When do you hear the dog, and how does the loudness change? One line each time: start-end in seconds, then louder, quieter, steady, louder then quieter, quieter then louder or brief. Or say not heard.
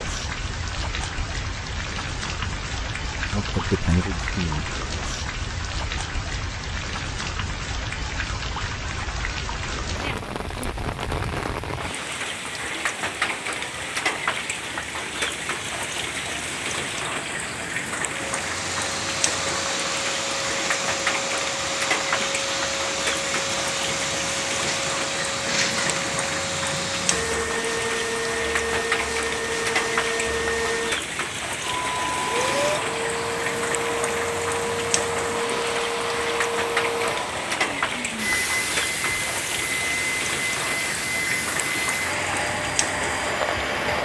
not heard.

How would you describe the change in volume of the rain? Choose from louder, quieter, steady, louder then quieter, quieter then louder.
steady.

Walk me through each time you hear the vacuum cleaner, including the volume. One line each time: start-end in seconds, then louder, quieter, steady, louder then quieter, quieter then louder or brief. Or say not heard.
18.1-44.0 steady.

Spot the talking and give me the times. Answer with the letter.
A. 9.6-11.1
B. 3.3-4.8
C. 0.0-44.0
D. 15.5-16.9
B.